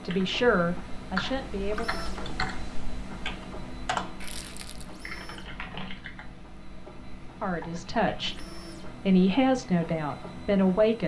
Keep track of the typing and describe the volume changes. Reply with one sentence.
The volume of the typing goes down.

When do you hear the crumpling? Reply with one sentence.
The crumpling can be heard from 4.2 to 5.0 s.